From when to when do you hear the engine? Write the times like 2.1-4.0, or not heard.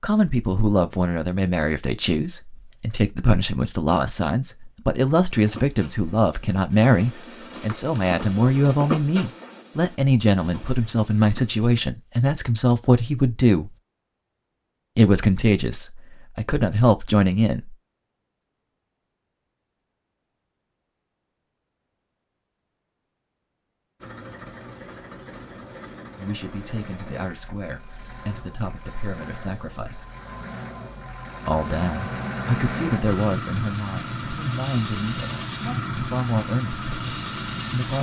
24.0-37.9.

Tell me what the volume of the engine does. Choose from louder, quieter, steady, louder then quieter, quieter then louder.
louder.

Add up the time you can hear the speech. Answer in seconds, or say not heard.
27 s.